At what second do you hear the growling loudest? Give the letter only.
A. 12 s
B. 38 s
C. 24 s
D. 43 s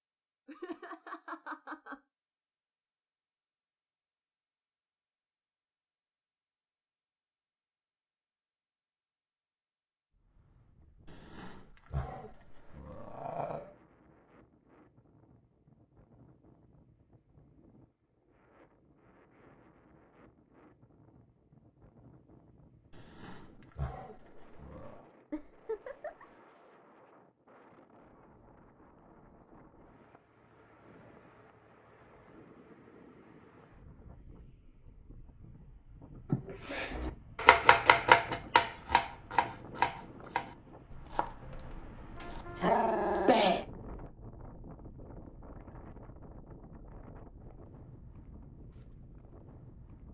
D.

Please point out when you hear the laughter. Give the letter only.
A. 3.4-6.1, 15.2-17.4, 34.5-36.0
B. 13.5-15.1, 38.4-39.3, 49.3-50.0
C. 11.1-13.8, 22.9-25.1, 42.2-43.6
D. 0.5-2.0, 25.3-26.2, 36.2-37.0
D.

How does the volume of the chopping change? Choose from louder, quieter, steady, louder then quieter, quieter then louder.
quieter.